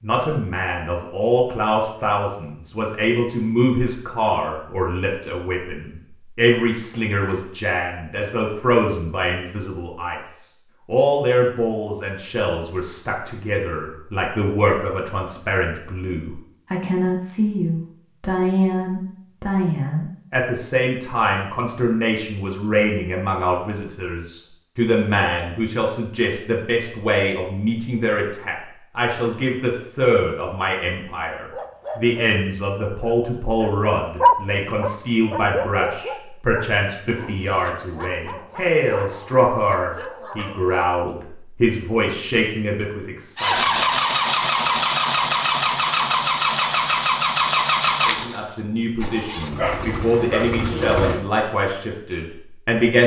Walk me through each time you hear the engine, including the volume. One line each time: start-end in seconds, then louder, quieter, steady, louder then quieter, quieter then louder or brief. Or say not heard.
43.4-51.2 quieter.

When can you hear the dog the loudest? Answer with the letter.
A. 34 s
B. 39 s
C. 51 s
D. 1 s
A.